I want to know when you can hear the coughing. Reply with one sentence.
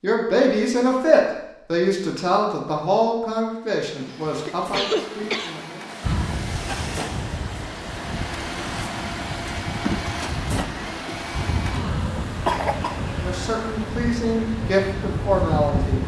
The coughing can be heard from 4.1 to 5.5 s and from 12.4 to 13.2 s.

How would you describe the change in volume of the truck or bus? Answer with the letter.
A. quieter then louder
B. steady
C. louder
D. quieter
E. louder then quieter
E.